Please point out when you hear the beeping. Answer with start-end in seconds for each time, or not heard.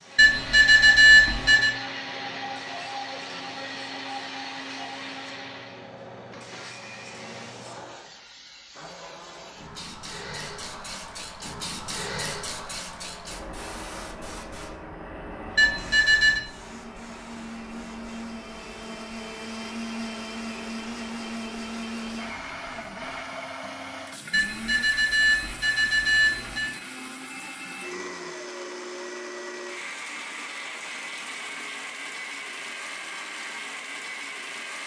0.1-1.8, 15.6-16.4, 24.3-26.8.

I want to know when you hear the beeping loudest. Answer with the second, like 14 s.
1 s.